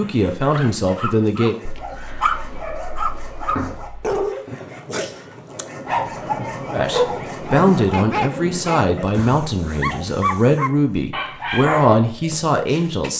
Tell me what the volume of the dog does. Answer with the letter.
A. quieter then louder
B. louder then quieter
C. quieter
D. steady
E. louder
D.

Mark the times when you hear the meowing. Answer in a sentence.
You can hear the meowing from 1.6 to 4.2 s.